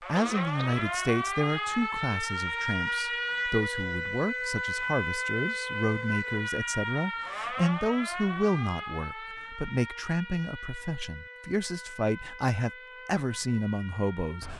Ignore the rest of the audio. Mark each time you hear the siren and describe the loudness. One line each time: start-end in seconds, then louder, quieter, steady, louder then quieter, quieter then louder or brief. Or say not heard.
0.0-14.5 quieter.